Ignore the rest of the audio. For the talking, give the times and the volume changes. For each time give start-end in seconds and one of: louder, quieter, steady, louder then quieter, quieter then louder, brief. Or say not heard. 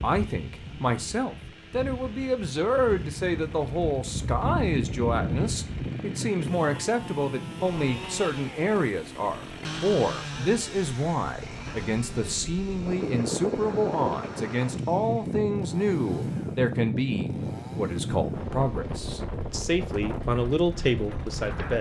0.0-21.7 steady.